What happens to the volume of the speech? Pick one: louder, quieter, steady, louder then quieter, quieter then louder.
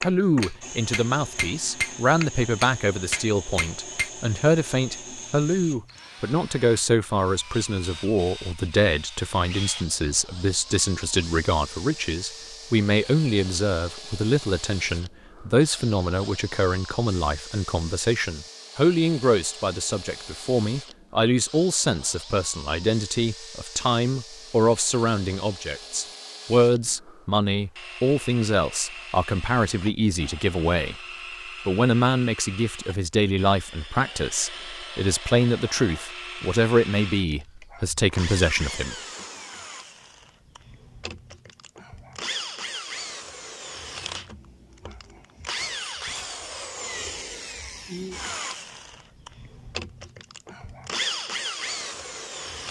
steady.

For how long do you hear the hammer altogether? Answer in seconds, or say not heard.
4 s.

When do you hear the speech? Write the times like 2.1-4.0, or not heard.
0.0-30.9, 31.6-39.0.